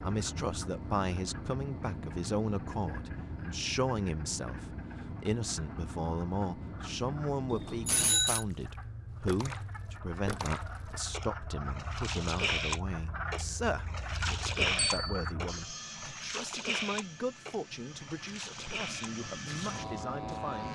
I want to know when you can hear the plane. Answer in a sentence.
The plane can be heard from 0.0 to 8.1 s and from 15.4 to 20.6 s.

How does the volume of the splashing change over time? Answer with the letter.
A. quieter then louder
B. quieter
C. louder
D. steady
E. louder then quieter
E.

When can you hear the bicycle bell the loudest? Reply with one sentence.
The volume of the bicycle bell peaks at 8 seconds.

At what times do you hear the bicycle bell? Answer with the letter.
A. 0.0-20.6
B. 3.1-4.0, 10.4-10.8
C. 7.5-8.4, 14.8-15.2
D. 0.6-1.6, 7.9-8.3
C.